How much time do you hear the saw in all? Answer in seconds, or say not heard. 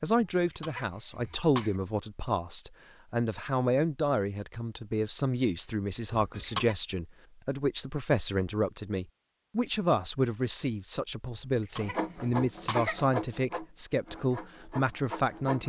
4 s.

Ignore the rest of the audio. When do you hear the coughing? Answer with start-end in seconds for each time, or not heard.
0.3-1.8, 6.1-6.8, 11.6-13.1.